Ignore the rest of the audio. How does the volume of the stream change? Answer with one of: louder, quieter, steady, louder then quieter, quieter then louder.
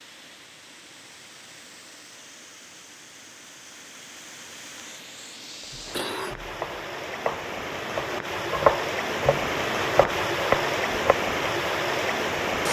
louder.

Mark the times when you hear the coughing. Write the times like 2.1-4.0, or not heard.
5.6-6.5.